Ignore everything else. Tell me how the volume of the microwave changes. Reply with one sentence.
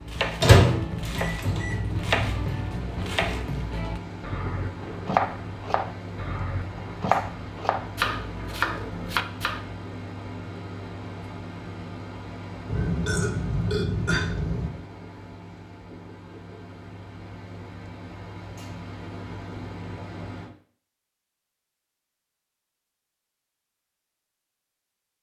The volume of the microwave goes down.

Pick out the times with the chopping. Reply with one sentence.
You can hear the chopping from 0.0 to 9.7 s.